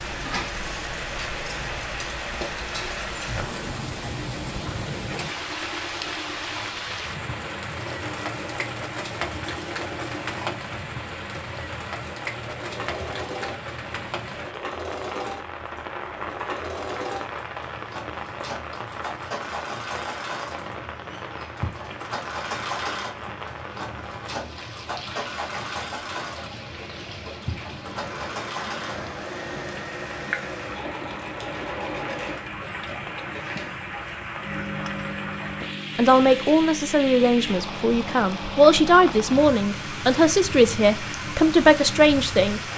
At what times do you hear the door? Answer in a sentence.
You can't hear the door here.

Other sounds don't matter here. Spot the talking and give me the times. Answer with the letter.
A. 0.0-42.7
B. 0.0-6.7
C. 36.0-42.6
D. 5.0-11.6
C.